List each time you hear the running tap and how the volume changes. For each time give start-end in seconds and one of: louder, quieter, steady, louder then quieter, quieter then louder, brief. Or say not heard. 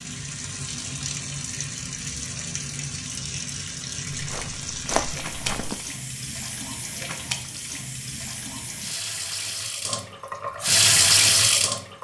0.0-11.9 louder.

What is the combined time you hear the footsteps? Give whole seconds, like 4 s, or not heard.
2 s.